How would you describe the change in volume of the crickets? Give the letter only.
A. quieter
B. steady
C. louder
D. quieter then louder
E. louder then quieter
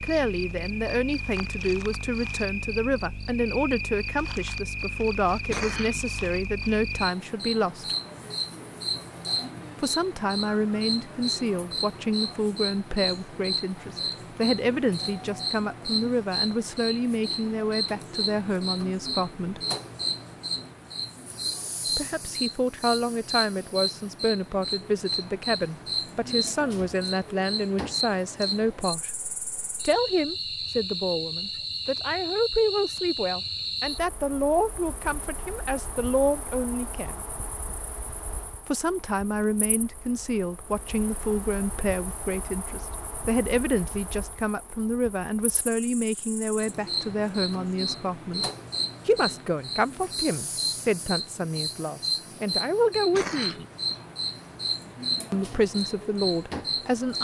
D.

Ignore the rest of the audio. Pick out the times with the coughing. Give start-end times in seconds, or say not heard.
5.3-6.0, 53.0-54.0.